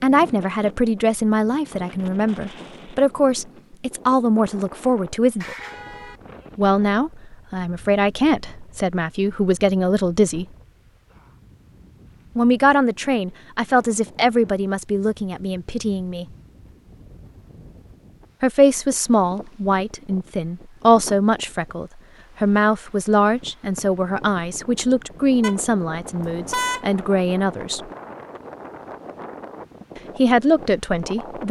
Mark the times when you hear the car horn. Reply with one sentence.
You can hear the car horn from 5.2 to 6.2 s and from 25.4 to 26.9 s.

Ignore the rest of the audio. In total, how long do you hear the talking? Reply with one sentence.
You can hear the talking for 24 seconds altogether.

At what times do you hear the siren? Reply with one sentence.
The siren can't be heard in this clip.